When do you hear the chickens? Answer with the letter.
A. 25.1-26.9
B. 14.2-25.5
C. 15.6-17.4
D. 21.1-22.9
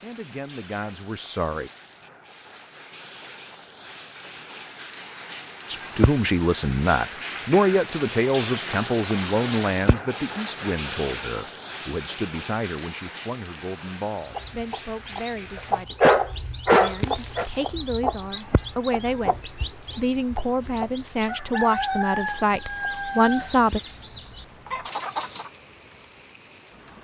B.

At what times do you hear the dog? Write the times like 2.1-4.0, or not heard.
15.6-17.4.